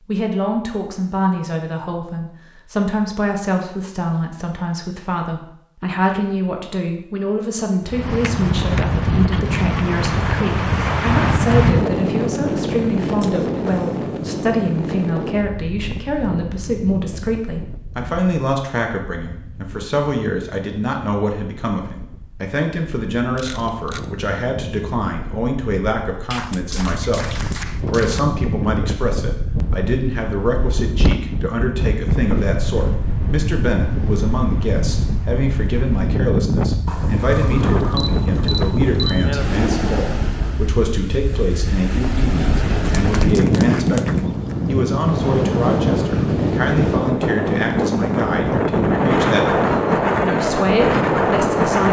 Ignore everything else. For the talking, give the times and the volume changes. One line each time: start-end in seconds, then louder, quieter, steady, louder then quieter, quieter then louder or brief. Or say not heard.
0.1-27.2 steady
27.9-51.8 steady.